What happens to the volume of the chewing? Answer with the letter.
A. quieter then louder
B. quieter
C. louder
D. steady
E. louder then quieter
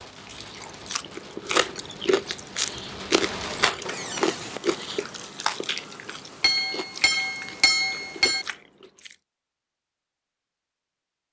B.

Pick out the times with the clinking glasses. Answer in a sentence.
You can hear the clinking glasses from 6.4 to 8.4 s.